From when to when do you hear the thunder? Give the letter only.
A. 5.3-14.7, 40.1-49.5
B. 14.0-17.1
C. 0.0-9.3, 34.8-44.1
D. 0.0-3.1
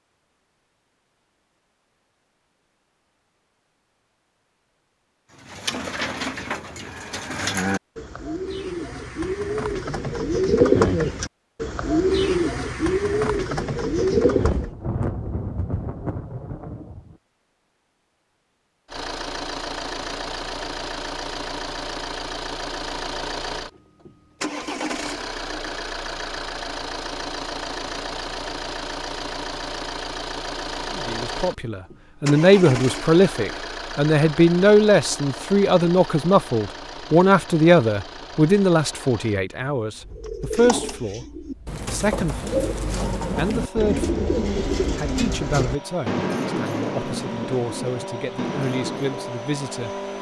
B.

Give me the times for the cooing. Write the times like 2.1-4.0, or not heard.
5.3-14.7, 40.1-49.5.